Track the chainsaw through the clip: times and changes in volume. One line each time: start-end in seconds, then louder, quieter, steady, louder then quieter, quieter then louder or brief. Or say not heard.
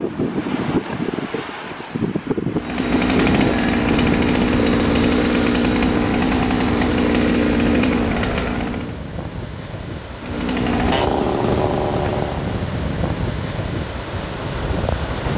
2.5-9.0 steady
10.2-12.6 brief.